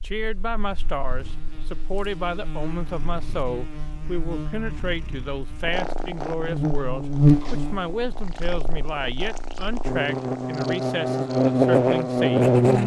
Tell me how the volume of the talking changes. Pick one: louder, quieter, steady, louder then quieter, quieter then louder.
steady.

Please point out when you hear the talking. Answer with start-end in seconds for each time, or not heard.
0.0-12.8.